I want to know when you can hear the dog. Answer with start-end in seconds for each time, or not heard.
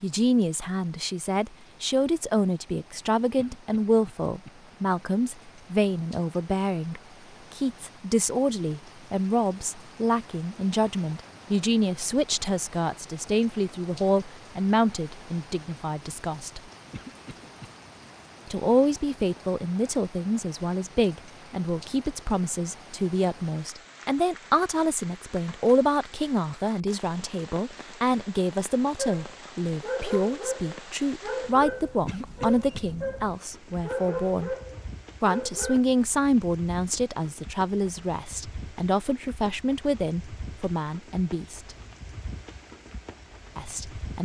28.9-35.9.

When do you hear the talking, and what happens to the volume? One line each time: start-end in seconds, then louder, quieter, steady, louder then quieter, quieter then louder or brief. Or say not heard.
0.0-16.6 steady
18.4-34.5 steady
35.2-41.8 quieter
43.5-44.2 brief.